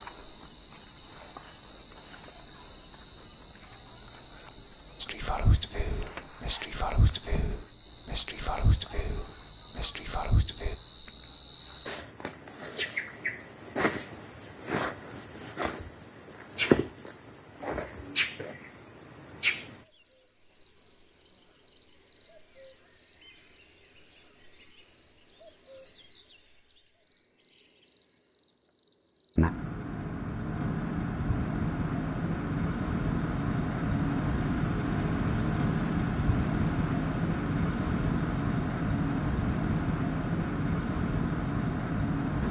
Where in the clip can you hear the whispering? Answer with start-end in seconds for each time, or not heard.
5.0-10.8.